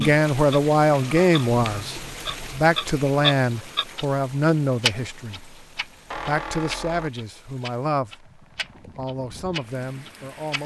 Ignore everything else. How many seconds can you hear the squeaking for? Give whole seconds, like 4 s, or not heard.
2 s.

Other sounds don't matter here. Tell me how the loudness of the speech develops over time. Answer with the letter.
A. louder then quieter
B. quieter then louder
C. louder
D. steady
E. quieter
E.